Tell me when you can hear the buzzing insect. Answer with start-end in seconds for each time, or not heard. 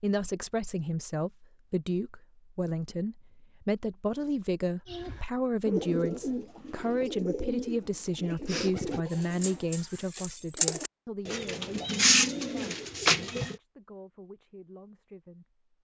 not heard.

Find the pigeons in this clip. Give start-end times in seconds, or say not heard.
4.8-13.6.